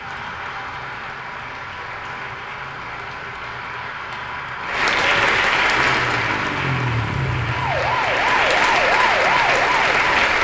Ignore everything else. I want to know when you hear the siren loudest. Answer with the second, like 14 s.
9 s.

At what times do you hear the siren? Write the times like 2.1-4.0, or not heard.
0.0-10.1.